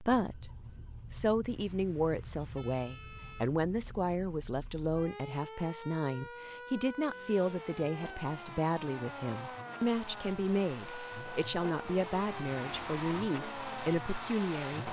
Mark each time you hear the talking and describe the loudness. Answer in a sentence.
You can hear the talking briefly from 0.0 to 0.5 s; and from 1.1 to 14.8 s, at a steady volume.